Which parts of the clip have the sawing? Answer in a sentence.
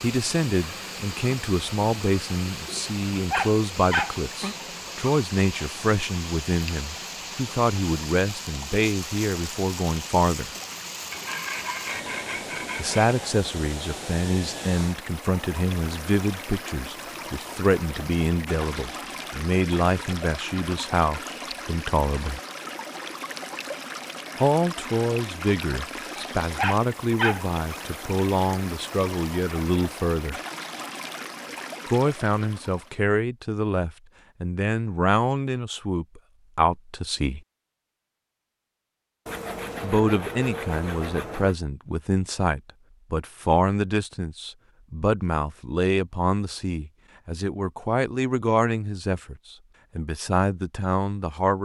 You can hear the sawing from 11.1 to 13.2 s and from 39.2 to 41.5 s.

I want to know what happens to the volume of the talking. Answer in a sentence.
The loudness of the talking stays about the same.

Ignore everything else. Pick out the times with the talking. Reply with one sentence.
You can hear the talking from 0.0 to 10.5 s, from 12.8 to 22.4 s, from 24.4 to 30.4 s, from 31.9 to 37.4 s and from 39.8 to 51.5 s.